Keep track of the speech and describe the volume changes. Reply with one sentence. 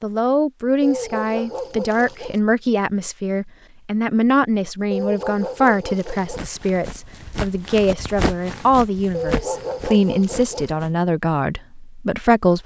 The loudness of the speech stays about the same.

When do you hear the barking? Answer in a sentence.
The barking can be heard from 0.8 to 2.4 s, from 4.9 to 6.5 s and from 9.1 to 10.7 s.